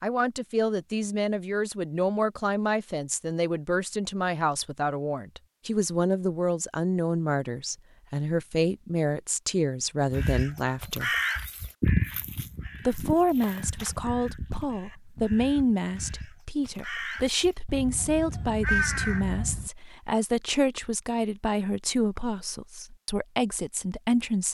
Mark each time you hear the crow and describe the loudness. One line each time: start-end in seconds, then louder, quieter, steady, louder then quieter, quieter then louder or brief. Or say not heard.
10.1-19.7 quieter then louder.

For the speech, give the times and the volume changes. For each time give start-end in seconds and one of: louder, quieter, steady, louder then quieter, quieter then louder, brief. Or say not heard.
0.0-11.2 steady
12.8-24.4 steady.